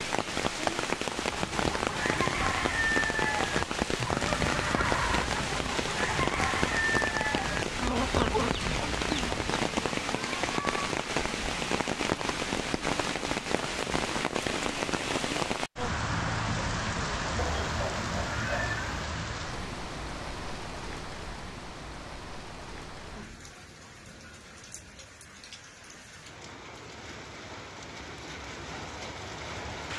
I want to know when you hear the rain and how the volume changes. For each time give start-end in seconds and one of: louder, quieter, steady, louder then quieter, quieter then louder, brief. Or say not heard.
0.0-29.9 quieter.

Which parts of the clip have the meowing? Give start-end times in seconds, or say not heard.
10.1-10.8, 17.4-18.9.